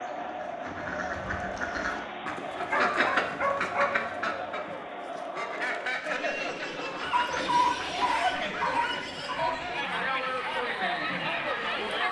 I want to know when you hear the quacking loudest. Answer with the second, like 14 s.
3 s.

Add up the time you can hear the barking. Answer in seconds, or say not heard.
4 s.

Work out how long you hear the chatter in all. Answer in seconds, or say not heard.
12 s.